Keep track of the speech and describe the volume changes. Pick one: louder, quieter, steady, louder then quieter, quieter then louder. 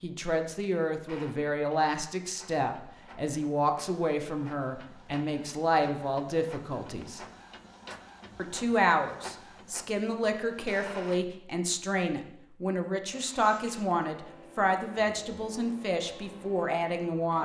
steady.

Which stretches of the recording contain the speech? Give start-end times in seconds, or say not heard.
0.0-7.2, 8.3-17.3.